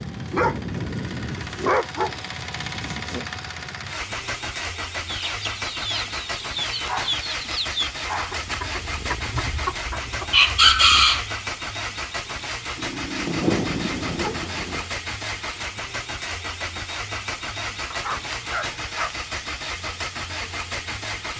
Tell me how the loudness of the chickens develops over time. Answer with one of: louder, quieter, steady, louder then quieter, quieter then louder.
louder.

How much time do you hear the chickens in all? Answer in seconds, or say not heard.
6 s.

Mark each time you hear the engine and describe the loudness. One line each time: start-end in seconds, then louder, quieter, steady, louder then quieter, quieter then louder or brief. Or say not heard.
0.0-21.3 steady.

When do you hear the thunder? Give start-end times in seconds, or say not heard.
13.2-14.9.